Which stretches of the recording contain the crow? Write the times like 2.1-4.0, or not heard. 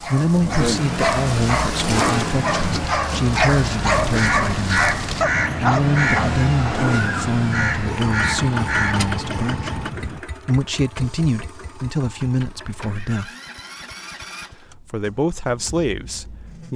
3.5-10.2.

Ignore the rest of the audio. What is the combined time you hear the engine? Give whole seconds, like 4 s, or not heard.
17 s.